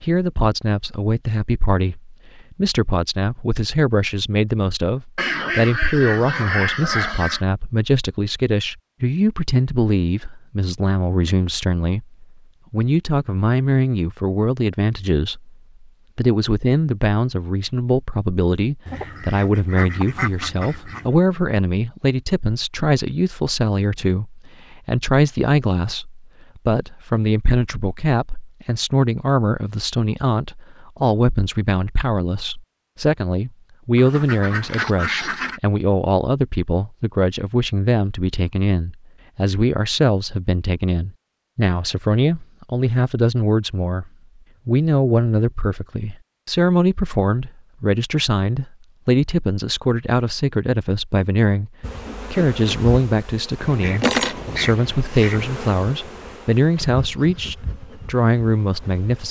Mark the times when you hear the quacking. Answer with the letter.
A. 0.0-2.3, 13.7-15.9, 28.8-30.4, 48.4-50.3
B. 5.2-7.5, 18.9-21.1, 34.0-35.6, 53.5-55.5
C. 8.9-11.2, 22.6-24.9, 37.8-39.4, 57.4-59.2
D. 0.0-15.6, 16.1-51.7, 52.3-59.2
B.